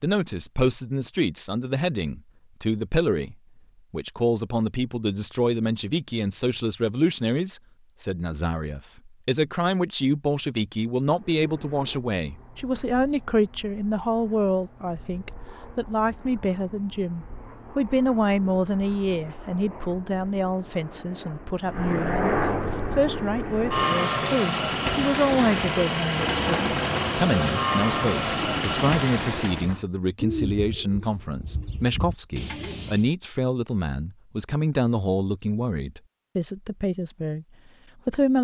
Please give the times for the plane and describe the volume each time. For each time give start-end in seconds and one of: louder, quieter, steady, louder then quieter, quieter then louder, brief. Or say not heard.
11.0-29.6 louder.